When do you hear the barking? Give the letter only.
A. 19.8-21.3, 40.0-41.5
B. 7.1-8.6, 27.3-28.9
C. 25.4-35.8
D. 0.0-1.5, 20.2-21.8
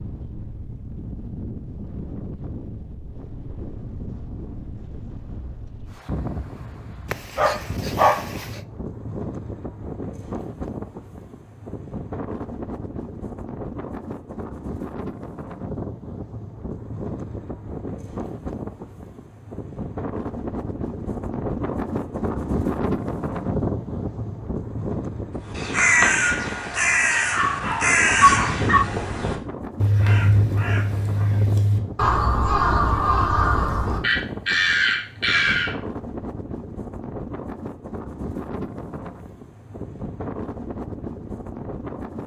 B.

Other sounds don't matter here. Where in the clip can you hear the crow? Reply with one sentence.
The crow can be heard from 25.4 to 35.8 s.